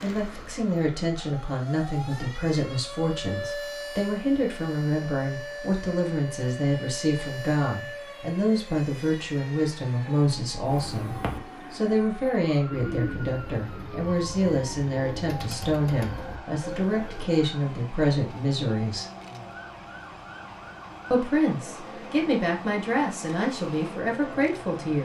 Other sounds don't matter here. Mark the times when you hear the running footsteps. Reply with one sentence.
The running footsteps can't be heard in this clip.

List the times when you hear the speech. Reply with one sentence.
You can hear the speech from 0.0 to 19.1 s and from 21.1 to 25.0 s.